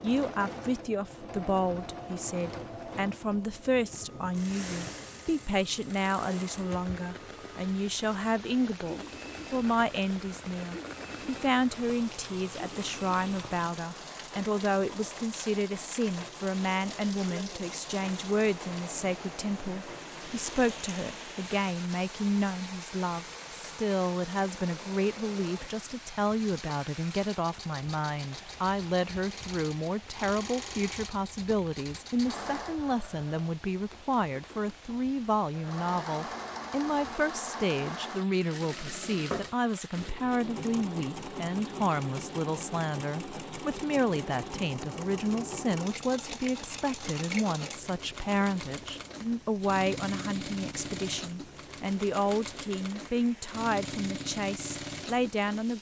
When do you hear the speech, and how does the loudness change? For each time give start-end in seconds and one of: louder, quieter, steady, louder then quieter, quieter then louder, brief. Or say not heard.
0.0-55.7 steady.